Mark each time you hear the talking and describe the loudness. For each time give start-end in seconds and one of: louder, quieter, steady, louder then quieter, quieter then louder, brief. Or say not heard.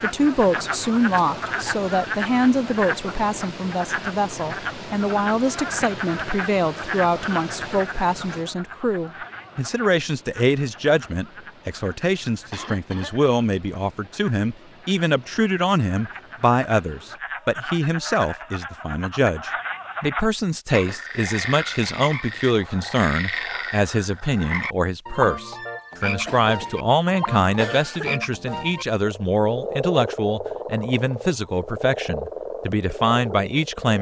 0.0-33.9 steady.